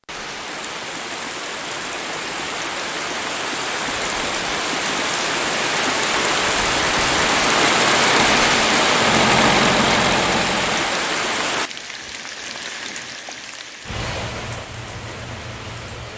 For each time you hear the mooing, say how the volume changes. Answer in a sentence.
You can't hear the mooing here.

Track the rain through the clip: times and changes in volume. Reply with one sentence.
The rain can be heard from 0.1 to 16.1 s, getting louder then quieter.